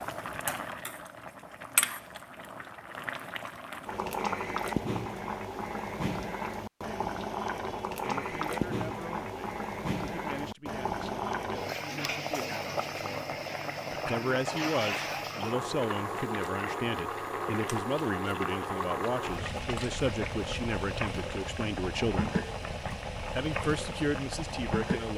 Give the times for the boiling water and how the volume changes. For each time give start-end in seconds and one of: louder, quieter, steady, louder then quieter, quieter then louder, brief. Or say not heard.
0.0-25.1 steady.